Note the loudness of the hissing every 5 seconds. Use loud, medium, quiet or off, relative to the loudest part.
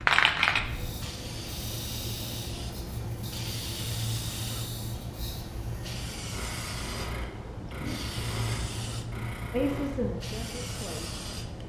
loud, medium, medium.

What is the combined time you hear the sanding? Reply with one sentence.
The sanding can be heard for 9 seconds in total.